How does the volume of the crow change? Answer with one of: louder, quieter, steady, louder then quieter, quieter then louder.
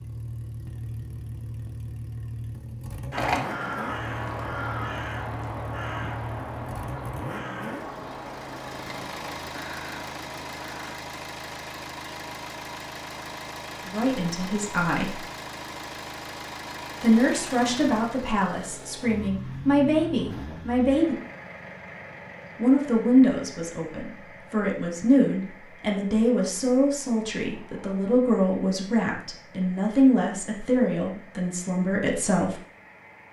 quieter.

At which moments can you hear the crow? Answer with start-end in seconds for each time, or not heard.
3.1-10.9.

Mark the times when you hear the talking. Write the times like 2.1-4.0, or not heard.
13.8-15.2, 17.0-21.1, 22.6-32.5.